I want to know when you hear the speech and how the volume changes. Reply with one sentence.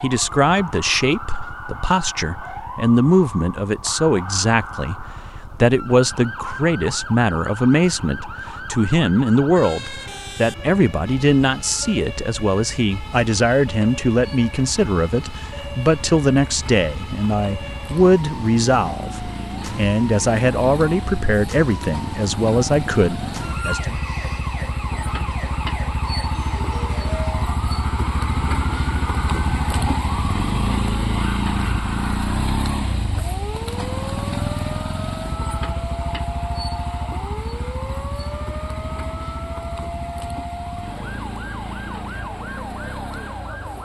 The speech can be heard from 0.0 to 23.9 s, at a steady volume.